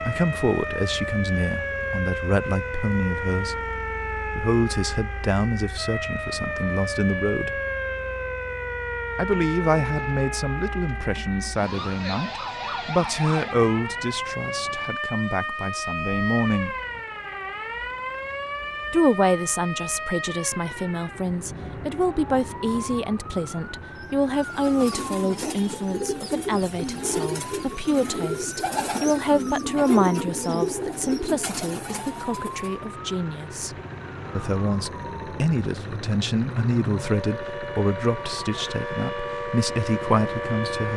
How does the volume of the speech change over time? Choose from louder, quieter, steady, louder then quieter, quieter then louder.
steady.